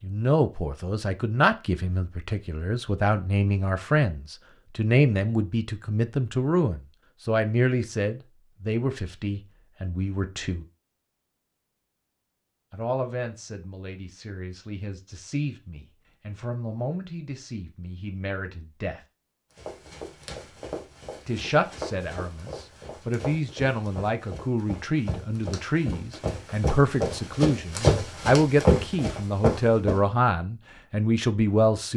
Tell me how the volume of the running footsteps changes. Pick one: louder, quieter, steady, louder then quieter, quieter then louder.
louder.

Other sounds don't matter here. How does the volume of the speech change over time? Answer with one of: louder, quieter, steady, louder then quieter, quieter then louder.
quieter then louder.